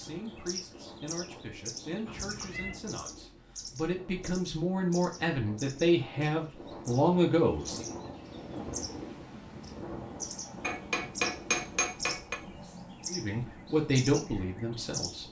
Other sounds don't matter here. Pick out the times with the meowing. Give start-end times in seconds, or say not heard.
2.0-2.8.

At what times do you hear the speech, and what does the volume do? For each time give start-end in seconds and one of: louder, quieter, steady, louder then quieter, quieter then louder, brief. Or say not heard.
0.0-7.8 louder
13.1-15.2 brief.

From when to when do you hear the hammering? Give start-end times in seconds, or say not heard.
10.6-12.3.